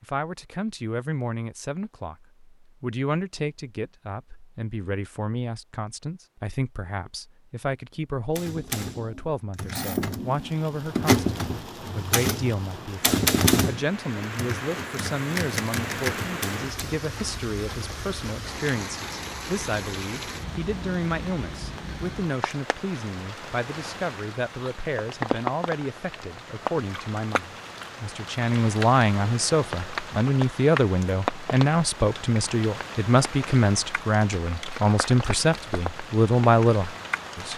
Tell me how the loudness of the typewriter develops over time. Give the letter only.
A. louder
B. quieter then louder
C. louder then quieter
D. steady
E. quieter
C.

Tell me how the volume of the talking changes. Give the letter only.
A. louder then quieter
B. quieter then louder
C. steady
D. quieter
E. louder
E.